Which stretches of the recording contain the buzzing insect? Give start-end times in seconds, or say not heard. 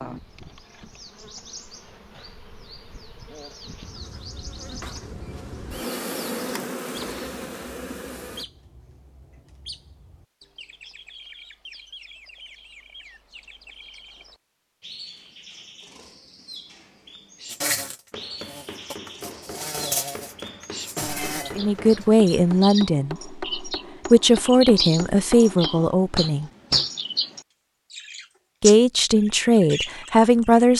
0.0-8.4, 17.4-22.1.